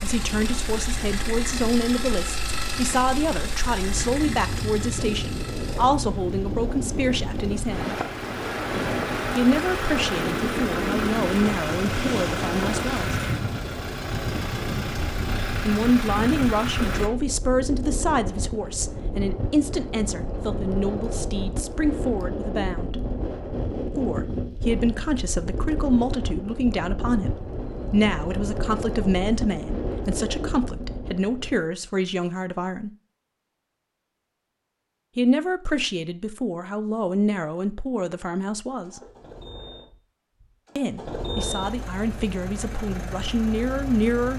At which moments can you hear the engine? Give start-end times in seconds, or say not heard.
0.0-17.1, 38.6-44.3.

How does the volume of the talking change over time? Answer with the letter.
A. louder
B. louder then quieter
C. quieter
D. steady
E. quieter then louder
D.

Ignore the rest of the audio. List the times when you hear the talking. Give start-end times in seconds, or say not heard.
0.0-8.0, 9.3-13.2, 15.7-23.0, 23.9-32.9, 35.1-39.0, 40.8-44.3.